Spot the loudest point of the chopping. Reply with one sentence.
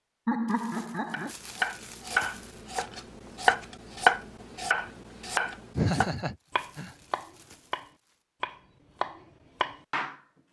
The loudest moment of the chopping is at 4 seconds.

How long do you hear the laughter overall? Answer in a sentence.
The laughter can be heard for 2 seconds in total.